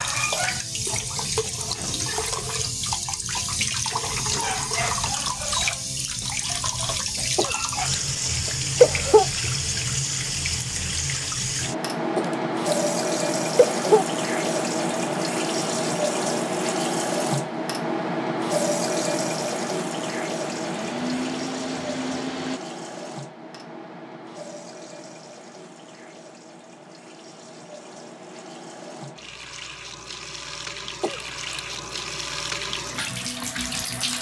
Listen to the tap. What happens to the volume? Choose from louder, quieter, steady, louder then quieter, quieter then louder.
quieter.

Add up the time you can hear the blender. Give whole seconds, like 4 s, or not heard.
2 s.